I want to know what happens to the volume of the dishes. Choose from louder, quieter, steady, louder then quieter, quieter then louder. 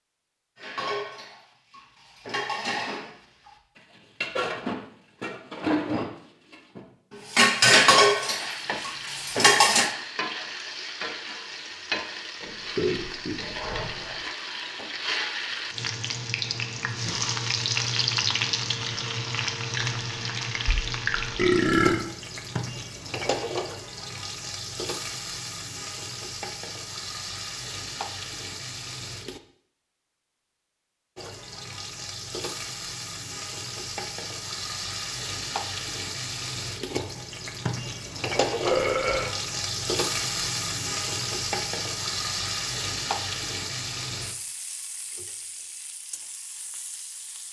louder.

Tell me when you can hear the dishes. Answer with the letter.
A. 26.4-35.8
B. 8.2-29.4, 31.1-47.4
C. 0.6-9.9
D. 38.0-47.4
C.